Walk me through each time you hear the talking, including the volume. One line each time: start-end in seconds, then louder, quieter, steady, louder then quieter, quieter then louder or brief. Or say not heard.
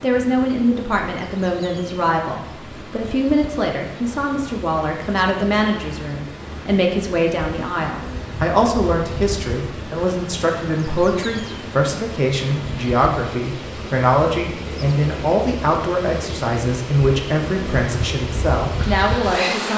0.0-19.7 steady.